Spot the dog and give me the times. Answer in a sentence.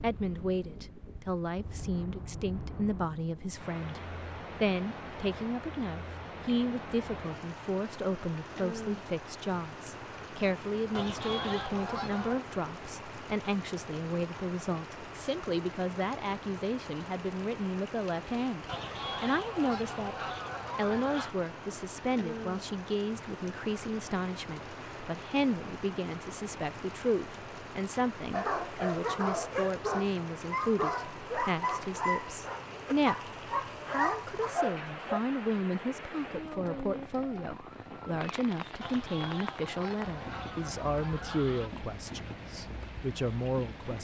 The dog can be heard from 28.3 to 35.2 s.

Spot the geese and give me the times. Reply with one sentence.
You can hear the geese from 10.9 to 12.4 s, from 18.6 to 21.4 s and from 38.8 to 41.7 s.